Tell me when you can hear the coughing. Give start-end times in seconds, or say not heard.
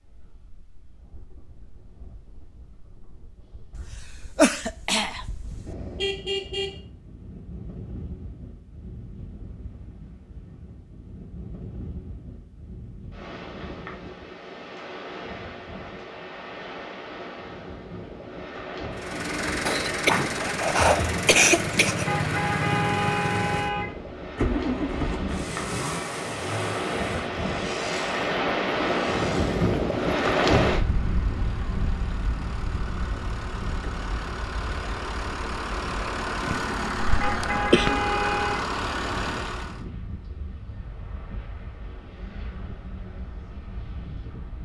3.8-5.8, 19.6-22.1, 36.5-38.0.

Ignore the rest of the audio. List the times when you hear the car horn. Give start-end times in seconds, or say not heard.
5.7-6.8, 22.1-23.9, 37.2-38.6.